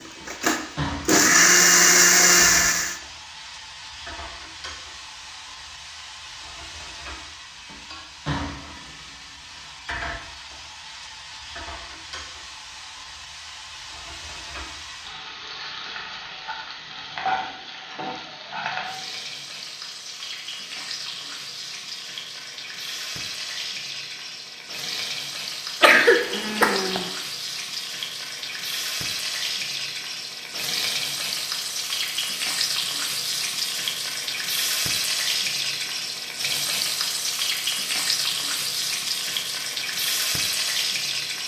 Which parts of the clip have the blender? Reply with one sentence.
The blender can be heard from 0.2 to 3.0 s.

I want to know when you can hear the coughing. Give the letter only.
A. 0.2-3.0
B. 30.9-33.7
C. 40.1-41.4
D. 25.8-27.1
D.